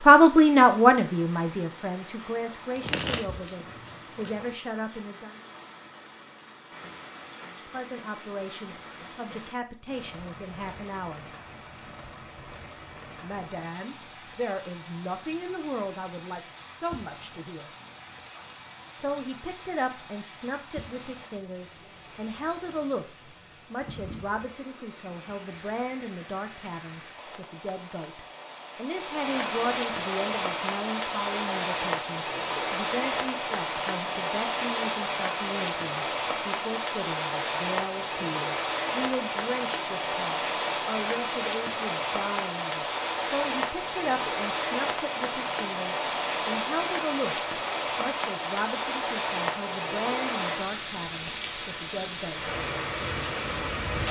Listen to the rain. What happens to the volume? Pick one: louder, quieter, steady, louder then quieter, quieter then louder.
louder.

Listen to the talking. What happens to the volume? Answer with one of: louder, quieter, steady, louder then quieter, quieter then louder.
quieter.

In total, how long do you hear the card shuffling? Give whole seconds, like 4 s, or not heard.
2 s.